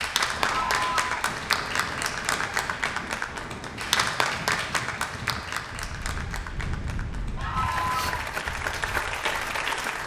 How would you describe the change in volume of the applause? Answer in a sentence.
The loudness of the applause goes down, then up.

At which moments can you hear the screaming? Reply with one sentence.
The screaming can be heard from 0.4 to 1.1 s and from 7.3 to 8.2 s.